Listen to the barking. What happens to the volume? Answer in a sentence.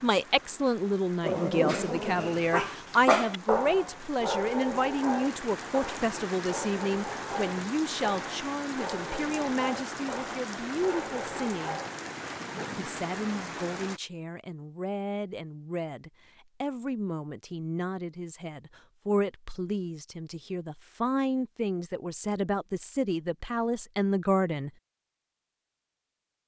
The loudness of the barking goes down.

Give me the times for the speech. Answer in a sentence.
The speech can be heard from 0.0 to 11.8 s and from 12.8 to 24.7 s.